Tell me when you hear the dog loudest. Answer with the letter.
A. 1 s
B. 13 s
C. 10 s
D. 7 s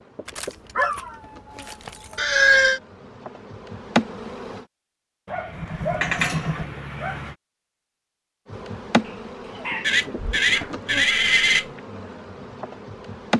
A.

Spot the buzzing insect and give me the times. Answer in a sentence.
You can hear the buzzing insect from 0.0 to 4.7 s and from 8.5 to 13.3 s.